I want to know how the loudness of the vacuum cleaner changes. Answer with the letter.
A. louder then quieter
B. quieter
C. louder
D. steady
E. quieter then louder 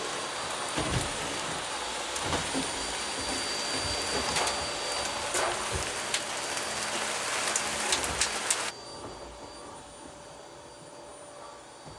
B.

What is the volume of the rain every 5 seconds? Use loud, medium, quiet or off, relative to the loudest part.
medium, loud, off.